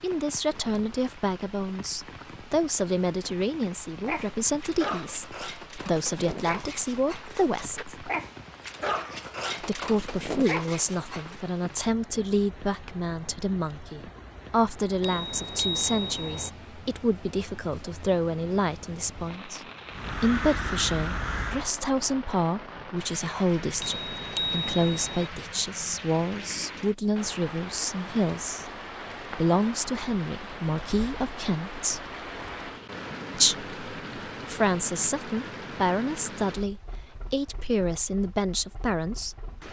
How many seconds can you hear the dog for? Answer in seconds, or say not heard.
7 s.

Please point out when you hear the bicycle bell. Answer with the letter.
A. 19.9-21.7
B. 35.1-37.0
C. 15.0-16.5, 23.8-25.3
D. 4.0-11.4
C.